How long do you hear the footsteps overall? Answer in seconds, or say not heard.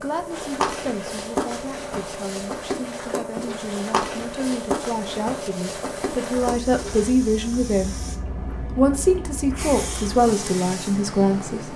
7 s.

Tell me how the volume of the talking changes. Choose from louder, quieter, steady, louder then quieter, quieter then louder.
louder.